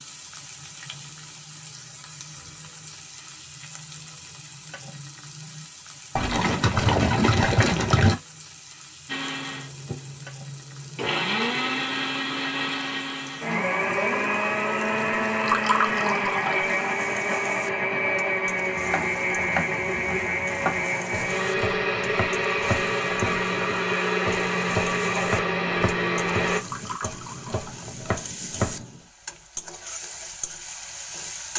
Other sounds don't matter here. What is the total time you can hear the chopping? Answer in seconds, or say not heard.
10 s.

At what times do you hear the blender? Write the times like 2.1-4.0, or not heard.
9.1-26.6.